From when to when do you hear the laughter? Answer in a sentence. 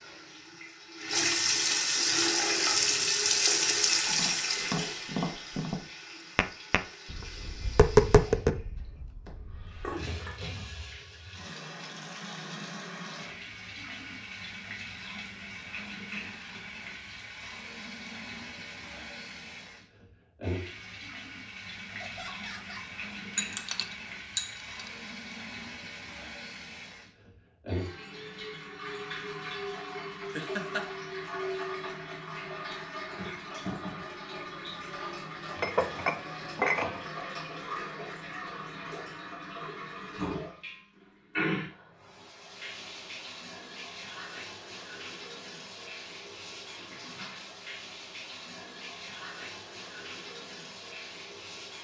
The laughter can be heard from 21.9 to 22.9 s and from 30.4 to 30.8 s.